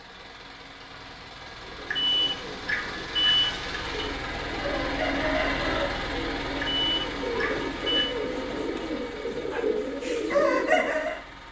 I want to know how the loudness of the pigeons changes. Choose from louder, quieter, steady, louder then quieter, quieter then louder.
louder.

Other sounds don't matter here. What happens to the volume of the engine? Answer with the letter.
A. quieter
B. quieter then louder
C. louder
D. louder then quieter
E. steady
D.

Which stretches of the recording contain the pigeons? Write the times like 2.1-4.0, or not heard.
1.6-11.2.